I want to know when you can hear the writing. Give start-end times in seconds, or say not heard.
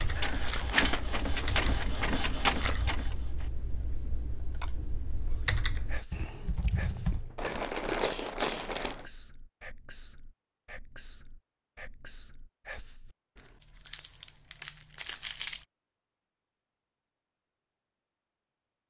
not heard.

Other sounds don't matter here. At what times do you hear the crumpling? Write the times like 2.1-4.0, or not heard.
0.1-2.8, 7.3-9.1, 13.3-15.6.